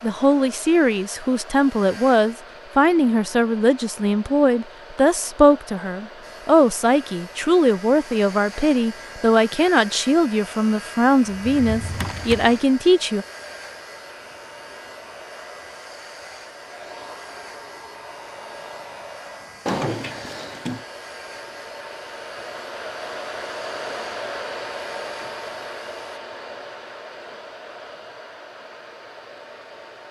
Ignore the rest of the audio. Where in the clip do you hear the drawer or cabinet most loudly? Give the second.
20 s.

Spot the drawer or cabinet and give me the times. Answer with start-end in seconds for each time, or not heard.
11.2-12.6, 19.6-20.9.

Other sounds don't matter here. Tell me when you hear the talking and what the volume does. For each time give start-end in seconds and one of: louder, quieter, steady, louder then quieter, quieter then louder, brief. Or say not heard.
0.0-13.2 steady.